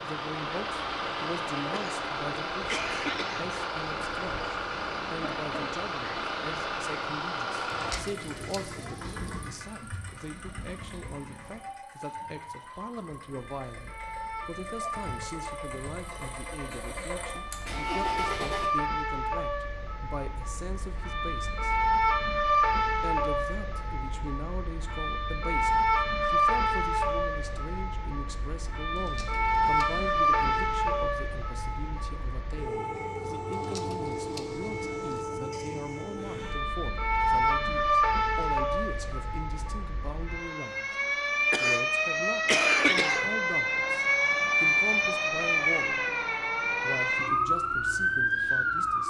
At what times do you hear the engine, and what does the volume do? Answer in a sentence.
You can hear the engine from 0.0 to 18.7 s, getting quieter then louder.